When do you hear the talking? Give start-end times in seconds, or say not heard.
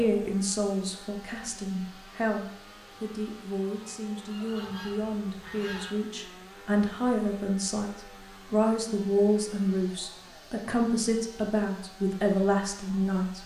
0.0-13.4.